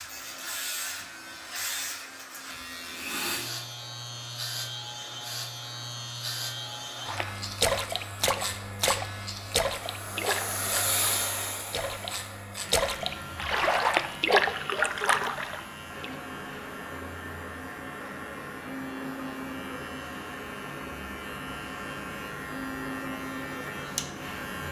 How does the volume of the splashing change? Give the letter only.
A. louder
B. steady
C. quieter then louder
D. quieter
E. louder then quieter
C.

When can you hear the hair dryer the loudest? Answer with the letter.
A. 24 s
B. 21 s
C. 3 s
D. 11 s
D.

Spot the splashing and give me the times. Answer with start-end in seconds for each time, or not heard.
7.0-16.1.